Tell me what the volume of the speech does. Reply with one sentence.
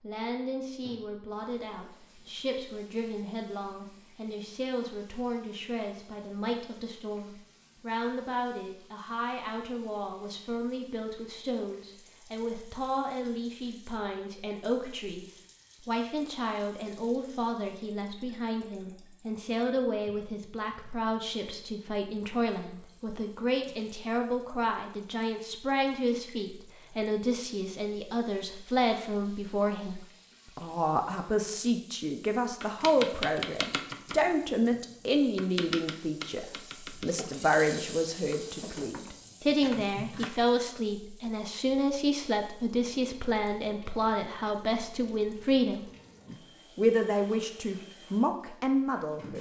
The volume of the speech goes up.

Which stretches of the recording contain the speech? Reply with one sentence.
You can hear the speech from 0.0 to 49.3 s.